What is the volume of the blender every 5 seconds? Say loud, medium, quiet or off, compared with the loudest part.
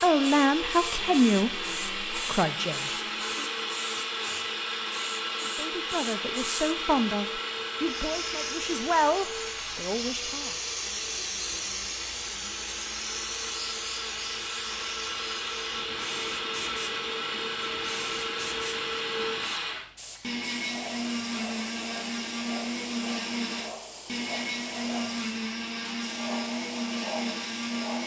loud, loud, medium, loud, loud, loud.